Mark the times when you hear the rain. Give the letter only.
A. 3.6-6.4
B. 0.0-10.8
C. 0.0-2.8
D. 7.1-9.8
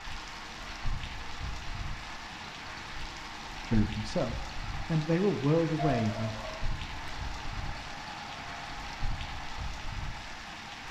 B.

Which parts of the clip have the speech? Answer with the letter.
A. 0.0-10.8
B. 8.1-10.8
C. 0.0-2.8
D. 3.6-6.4
D.